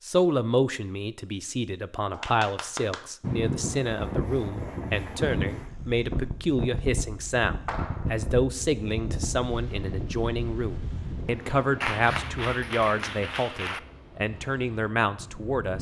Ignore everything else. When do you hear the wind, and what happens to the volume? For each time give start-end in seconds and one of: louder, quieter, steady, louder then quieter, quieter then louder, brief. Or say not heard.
3.2-15.7 quieter.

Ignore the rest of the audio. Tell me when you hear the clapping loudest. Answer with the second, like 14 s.
12 s.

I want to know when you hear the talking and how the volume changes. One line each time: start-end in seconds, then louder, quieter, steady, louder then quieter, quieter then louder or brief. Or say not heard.
0.0-15.7 steady.